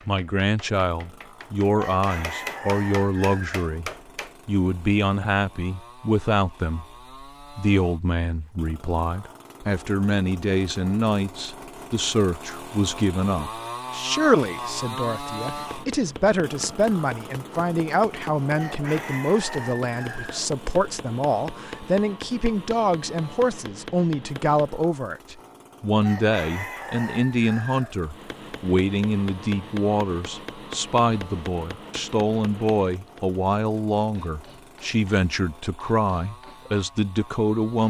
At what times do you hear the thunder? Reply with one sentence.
The thunder can't be heard in this clip.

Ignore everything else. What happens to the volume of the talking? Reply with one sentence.
The loudness of the talking stays about the same.